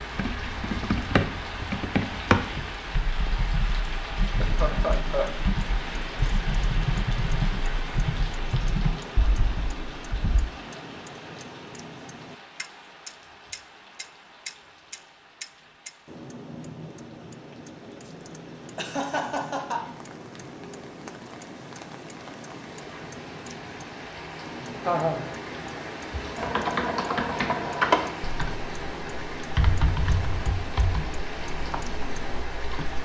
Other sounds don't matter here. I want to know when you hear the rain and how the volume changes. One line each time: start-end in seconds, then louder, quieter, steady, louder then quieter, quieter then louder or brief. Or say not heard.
0.0-33.0 quieter then louder.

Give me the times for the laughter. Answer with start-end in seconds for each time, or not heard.
4.2-5.3, 18.8-19.9, 24.9-25.3.